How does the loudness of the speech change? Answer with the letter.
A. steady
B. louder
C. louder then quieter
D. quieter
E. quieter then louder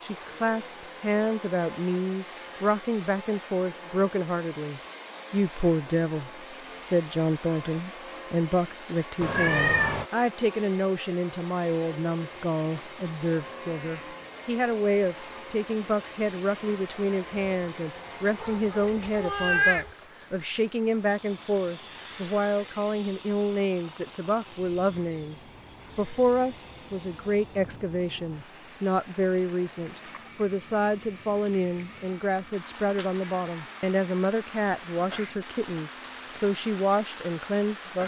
A.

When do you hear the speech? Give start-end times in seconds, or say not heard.
0.0-38.0.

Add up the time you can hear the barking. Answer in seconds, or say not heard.
not heard.